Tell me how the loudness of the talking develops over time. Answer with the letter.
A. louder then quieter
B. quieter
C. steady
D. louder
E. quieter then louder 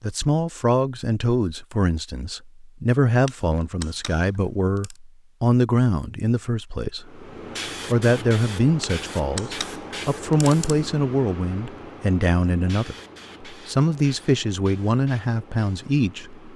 C.